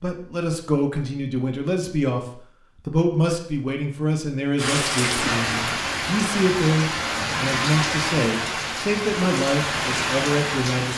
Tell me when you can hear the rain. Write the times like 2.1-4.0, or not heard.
4.5-10.9.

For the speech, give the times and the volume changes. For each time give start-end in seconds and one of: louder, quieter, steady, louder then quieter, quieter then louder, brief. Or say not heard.
0.0-10.9 steady.